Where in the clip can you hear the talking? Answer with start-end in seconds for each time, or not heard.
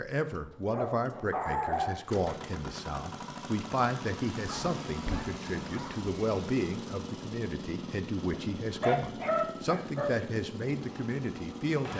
0.0-11.9.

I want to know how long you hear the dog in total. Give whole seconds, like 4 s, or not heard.
5 s.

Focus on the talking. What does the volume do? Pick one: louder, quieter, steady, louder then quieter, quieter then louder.
steady.